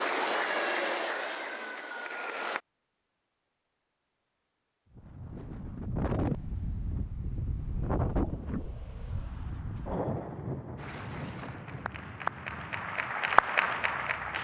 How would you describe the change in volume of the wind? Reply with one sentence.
The volume of the wind goes down.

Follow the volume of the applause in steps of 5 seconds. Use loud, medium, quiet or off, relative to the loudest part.
loud, off, loud.